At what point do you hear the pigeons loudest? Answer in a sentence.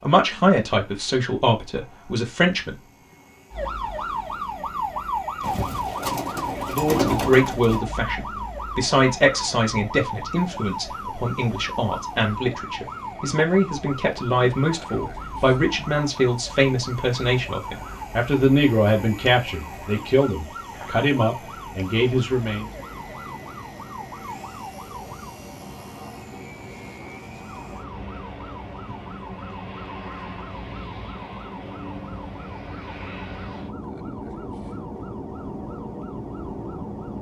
The loudest moment of the pigeons is at 7 seconds.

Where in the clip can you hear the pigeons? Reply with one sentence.
The pigeons can be heard from 5.4 to 7.8 s.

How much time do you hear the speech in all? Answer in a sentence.
The speech can be heard for 19 seconds in total.